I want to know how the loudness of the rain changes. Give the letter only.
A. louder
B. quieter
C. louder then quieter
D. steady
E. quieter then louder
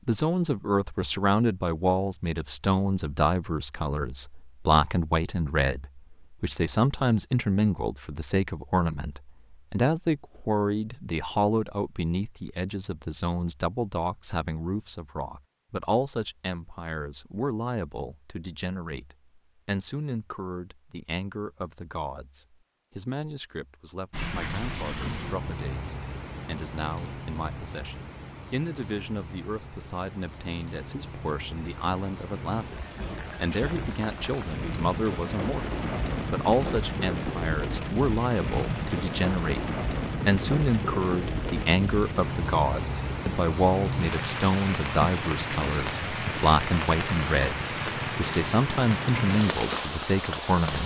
A.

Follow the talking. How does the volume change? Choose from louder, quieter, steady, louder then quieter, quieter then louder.
quieter then louder.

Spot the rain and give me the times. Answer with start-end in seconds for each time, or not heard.
24.1-50.8.